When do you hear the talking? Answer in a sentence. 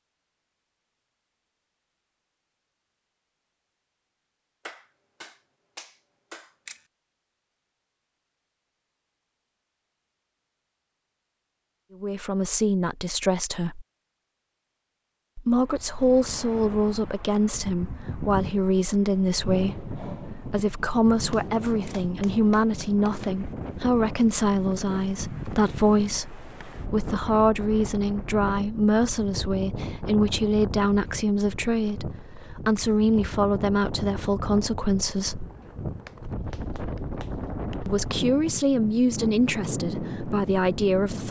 You can hear the talking from 12.0 to 13.8 s, from 15.3 to 35.5 s and from 37.9 to 41.2 s.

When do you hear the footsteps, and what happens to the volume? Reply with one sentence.
You can't hear the footsteps here.